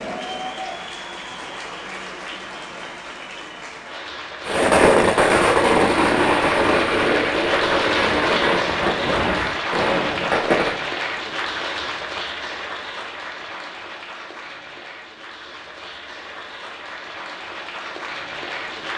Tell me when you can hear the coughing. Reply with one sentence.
You can't hear the coughing here.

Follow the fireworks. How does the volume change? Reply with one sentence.
The loudness of the fireworks goes down.